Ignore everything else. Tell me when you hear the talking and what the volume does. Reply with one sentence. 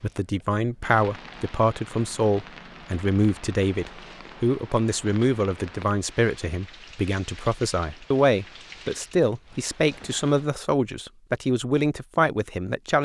You can hear the talking from 0.0 to 13.0 s, at a steady volume.